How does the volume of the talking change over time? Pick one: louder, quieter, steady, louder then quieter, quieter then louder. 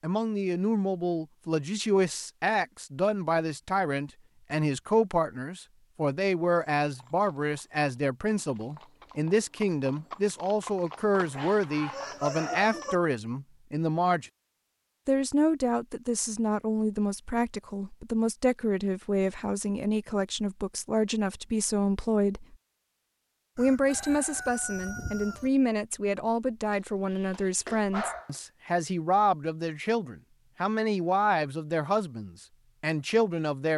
steady.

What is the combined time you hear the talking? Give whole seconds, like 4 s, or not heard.
32 s.